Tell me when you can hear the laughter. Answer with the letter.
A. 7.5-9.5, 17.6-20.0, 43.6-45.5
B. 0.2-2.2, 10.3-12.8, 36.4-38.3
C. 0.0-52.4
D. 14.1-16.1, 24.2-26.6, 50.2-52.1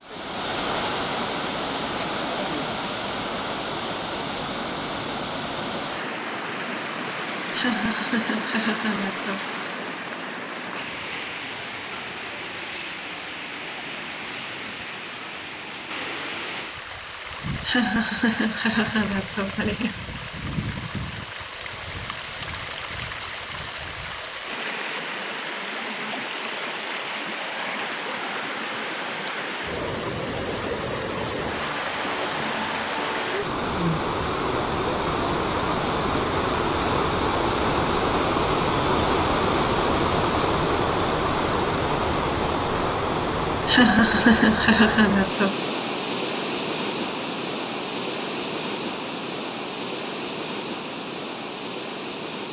A.